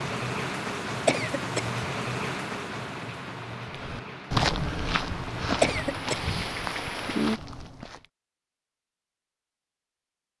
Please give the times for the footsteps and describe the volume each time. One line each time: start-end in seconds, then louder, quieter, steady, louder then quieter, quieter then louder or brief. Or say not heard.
3.7-8.1 quieter.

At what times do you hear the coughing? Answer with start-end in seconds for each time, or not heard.
1.1-1.7, 5.6-6.2.